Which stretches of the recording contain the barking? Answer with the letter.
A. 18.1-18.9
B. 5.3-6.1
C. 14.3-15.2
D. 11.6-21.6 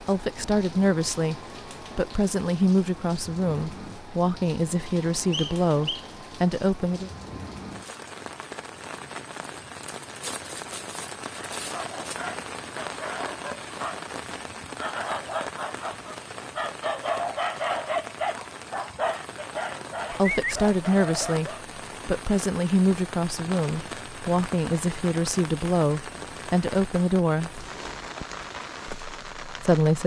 D.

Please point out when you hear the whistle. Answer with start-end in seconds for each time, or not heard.
5.3-6.1.